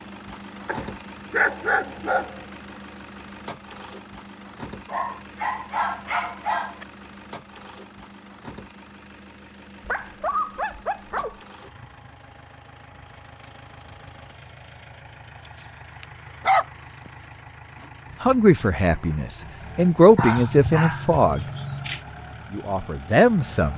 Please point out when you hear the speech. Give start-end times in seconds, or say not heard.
18.2-21.4, 22.4-23.7.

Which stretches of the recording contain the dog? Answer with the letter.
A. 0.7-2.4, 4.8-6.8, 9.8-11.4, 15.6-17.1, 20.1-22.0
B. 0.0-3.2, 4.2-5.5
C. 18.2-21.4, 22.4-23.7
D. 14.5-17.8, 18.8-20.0
A.